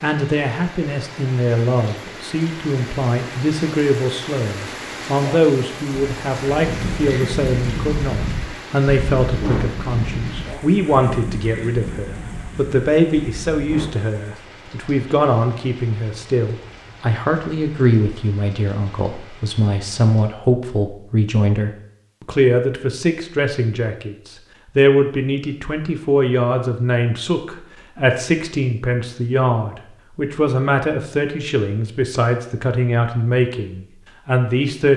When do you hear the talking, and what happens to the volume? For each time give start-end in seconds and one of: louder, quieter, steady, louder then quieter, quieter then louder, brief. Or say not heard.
0.0-34.9 steady.